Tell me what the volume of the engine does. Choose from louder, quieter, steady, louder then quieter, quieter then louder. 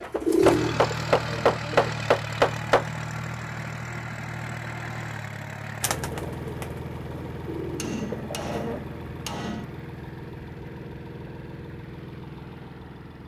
quieter.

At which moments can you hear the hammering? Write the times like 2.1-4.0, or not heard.
0.1-2.9, 7.8-9.7.